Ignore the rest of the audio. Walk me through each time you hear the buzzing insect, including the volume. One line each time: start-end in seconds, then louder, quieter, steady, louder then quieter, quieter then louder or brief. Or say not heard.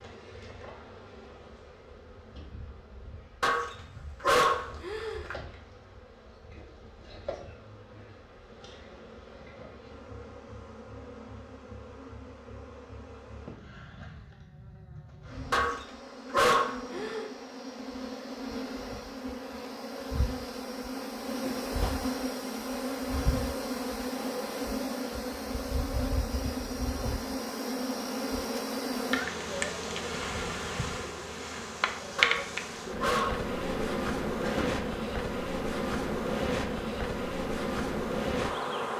0.0-38.9 louder.